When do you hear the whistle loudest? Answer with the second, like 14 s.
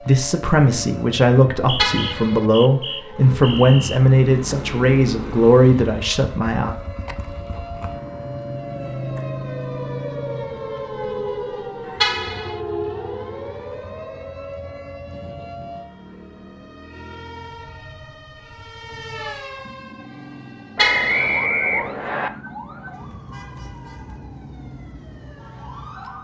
21 s.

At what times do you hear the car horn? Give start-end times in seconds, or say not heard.
1.8-2.5, 12.0-12.6, 20.8-21.4.